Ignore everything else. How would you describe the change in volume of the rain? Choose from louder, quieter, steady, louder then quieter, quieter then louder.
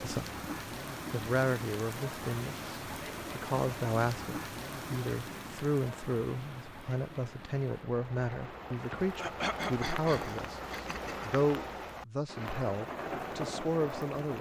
quieter then louder.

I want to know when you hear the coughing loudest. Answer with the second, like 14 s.
10 s.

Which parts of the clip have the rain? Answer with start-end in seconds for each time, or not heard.
0.0-14.3.